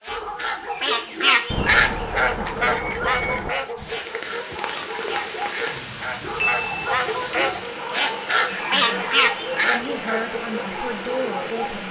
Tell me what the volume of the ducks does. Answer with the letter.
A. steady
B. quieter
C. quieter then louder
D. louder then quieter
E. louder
C.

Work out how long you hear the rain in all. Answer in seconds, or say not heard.
8 s.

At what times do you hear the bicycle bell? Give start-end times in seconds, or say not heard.
1.5-3.5, 6.4-6.9.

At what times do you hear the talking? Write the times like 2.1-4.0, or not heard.
8.5-11.8.